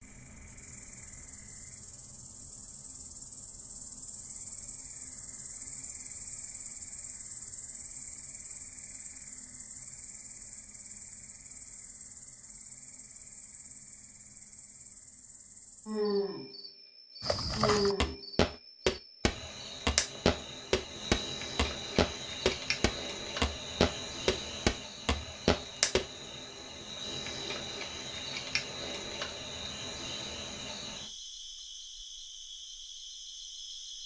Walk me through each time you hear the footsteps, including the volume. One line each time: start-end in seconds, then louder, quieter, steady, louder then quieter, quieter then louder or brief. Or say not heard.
17.2-26.1 steady.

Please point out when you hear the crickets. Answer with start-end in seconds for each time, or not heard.
0.0-34.0.